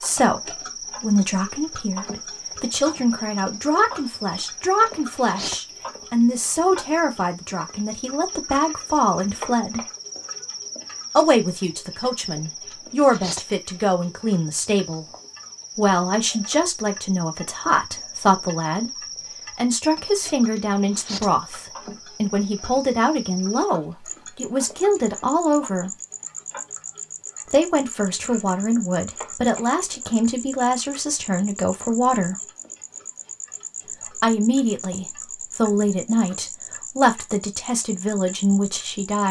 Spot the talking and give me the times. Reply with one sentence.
You can hear the talking from 0.0 to 9.8 s, from 11.2 to 15.1 s, from 15.8 to 25.9 s, from 27.4 to 32.4 s and from 34.0 to 39.2 s.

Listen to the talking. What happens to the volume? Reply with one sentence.
The loudness of the talking stays about the same.